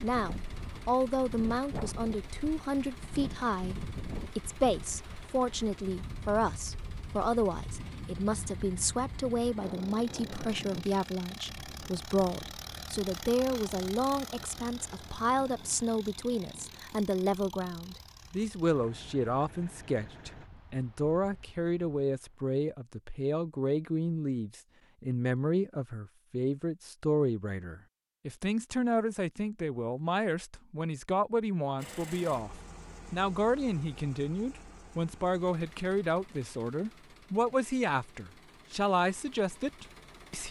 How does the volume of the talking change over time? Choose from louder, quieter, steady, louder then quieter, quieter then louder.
steady.